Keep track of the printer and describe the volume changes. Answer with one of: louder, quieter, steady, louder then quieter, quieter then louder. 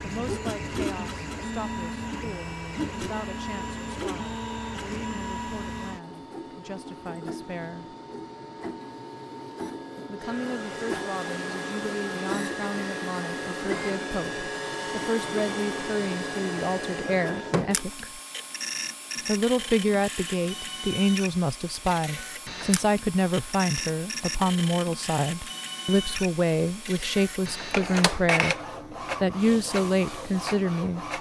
steady.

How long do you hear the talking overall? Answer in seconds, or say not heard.
27 s.